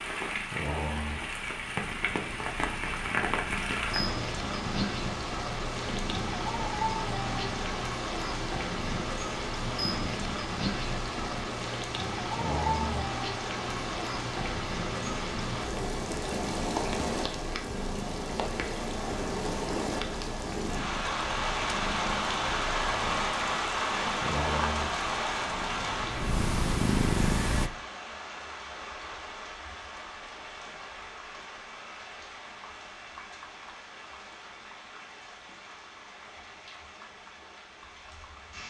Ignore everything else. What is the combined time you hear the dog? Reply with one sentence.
The dog can't be heard in this clip.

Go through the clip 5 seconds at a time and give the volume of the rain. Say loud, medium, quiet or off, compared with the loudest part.
loud, loud, loud, loud, loud, medium, quiet, quiet.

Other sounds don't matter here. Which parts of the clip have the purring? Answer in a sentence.
You can hear the purring from 0.0 to 27.7 s.